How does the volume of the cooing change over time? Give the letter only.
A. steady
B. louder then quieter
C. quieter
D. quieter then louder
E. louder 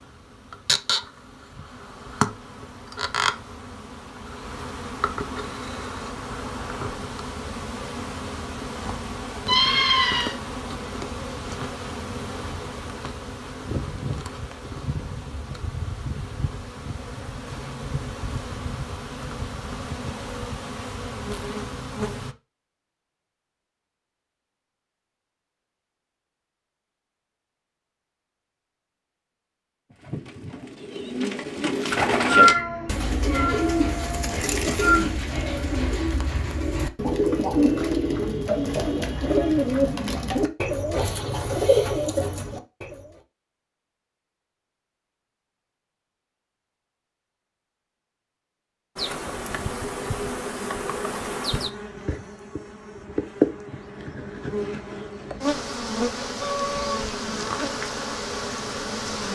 A.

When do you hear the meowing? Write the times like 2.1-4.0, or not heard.
9.4-10.3, 32.2-35.0, 56.4-57.0.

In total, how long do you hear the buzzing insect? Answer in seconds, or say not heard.
33 s.